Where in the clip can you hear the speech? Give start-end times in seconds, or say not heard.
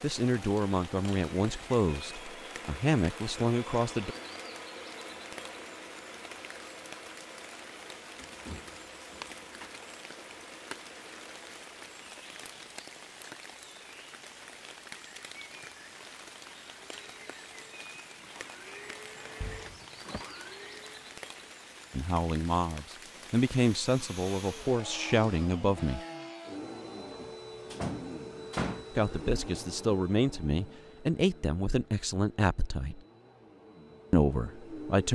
0.0-4.2, 21.9-26.0, 28.9-33.0, 34.1-35.1.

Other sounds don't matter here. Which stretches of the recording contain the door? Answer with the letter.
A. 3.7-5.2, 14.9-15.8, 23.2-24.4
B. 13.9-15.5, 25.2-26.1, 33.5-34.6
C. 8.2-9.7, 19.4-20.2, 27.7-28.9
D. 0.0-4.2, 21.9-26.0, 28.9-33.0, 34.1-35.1
C.